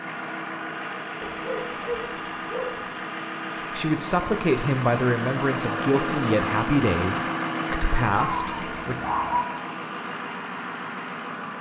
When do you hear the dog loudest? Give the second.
9 s.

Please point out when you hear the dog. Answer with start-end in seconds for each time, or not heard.
1.2-2.9, 8.2-9.4.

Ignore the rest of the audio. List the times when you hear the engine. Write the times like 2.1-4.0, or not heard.
0.0-11.5.